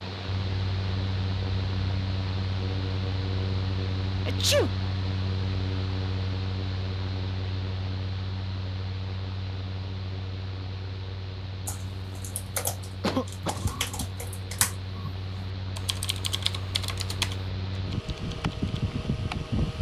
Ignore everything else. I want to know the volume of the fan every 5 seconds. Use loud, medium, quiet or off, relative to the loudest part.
loud, loud, medium, loud.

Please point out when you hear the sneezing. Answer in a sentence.
You can hear the sneezing from 4.2 to 4.7 s and from 13.0 to 13.7 s.